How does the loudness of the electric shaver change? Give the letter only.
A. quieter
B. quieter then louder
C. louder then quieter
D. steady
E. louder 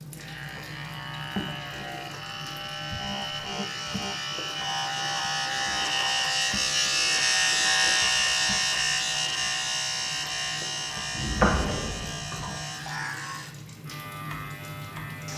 C.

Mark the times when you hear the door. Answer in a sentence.
The door can be heard from 11.2 to 12.4 s.